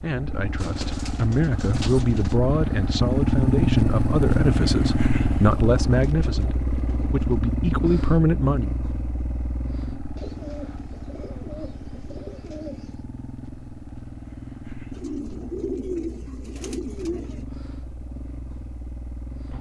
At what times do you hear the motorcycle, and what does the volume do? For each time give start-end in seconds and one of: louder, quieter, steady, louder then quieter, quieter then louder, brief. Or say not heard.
0.0-19.5 quieter.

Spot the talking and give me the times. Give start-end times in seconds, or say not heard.
0.0-8.7.